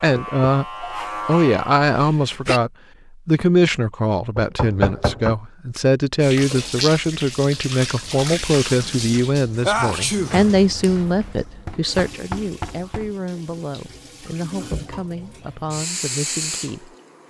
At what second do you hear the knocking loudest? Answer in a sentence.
The loudest moment of the knocking is at 5 seconds.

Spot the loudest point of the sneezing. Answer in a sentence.
The loudest moment of the sneezing is at 10 seconds.